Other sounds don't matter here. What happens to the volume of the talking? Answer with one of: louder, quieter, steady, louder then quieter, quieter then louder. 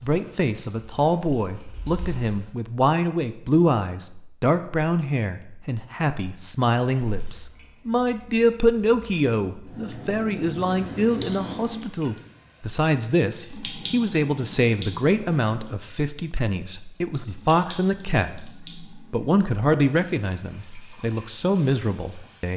steady.